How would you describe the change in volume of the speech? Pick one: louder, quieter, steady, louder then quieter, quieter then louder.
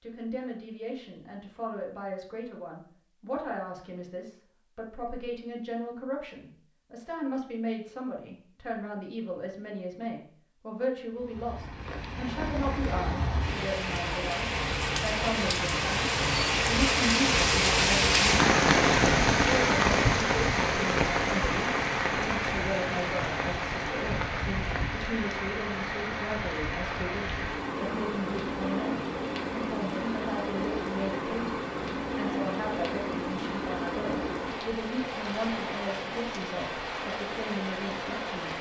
steady.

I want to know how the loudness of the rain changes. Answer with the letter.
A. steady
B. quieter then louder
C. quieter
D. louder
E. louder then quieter
E.